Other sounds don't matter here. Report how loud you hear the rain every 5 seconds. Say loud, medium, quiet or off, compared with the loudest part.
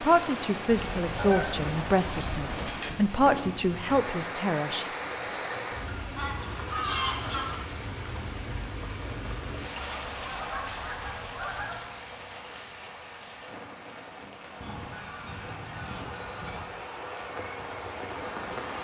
loud, loud, medium, loud.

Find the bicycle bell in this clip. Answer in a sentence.
You can't hear the bicycle bell here.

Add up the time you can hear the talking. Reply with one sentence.
The talking can be heard for 5 seconds in total.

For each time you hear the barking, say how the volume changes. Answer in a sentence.
You can't hear the barking here.